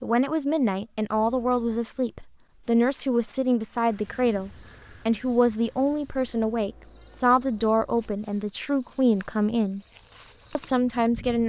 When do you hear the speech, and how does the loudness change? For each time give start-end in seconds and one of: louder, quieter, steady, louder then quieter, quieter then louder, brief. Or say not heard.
0.0-9.8 steady
10.6-11.4 brief.